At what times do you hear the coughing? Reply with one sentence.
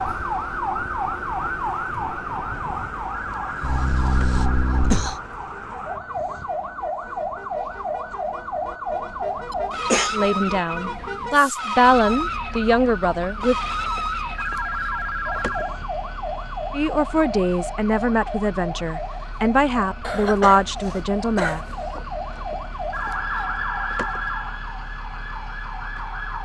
The coughing can be heard from 3.6 to 5.2 s, from 9.5 to 10.2 s and from 20.0 to 22.0 s.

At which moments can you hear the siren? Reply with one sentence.
You can hear the siren from 0.0 to 26.4 s.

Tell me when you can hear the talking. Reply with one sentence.
You can hear the talking from 10.1 to 13.6 s and from 16.7 to 21.6 s.